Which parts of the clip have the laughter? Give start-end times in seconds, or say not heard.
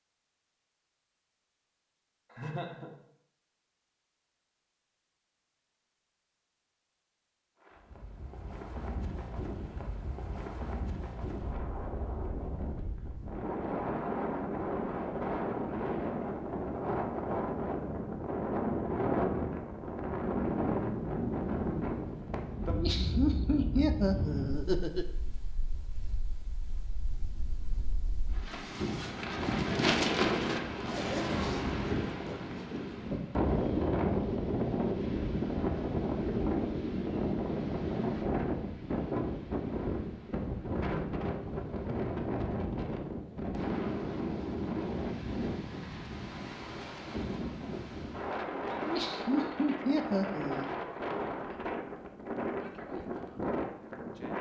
2.3-3.0, 22.6-25.1, 48.8-50.7.